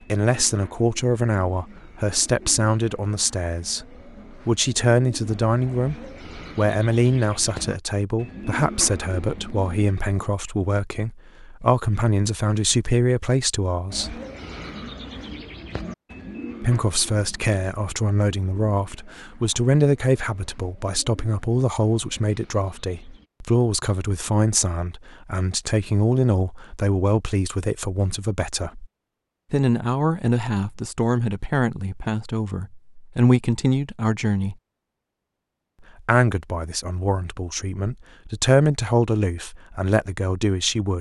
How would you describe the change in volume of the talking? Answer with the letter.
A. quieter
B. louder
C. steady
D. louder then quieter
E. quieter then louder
C.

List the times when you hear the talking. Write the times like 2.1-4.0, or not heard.
0.1-14.2, 16.6-28.9, 29.5-34.5, 36.0-40.9.